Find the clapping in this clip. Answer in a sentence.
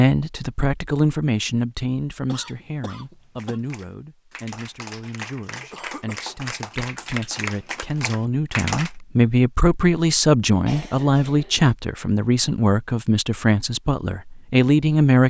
The clapping can be heard from 3.4 to 8.9 s.